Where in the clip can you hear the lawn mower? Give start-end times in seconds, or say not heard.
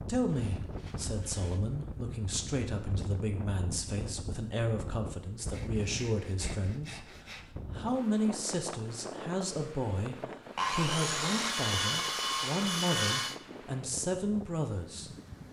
not heard.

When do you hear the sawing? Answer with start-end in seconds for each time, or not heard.
0.3-1.8, 5.3-7.5, 10.6-13.4.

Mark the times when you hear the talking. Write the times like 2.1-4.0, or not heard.
0.0-15.1.